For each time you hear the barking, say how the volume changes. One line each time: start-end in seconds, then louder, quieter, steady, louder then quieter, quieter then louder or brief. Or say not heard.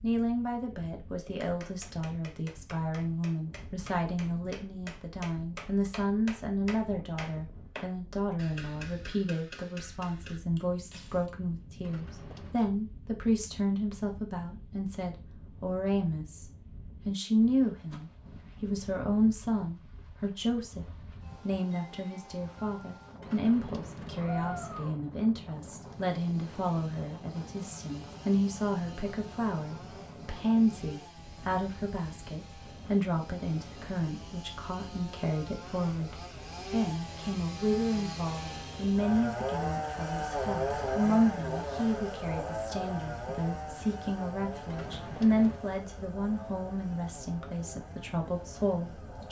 not heard.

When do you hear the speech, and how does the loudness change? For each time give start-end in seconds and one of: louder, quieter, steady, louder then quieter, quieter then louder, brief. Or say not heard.
0.0-49.2 steady.